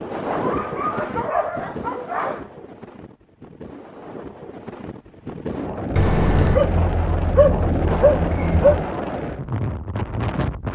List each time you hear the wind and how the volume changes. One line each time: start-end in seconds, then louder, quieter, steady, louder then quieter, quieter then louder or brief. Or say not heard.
0.0-10.7 quieter then louder.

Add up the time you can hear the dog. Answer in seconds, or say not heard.
5 s.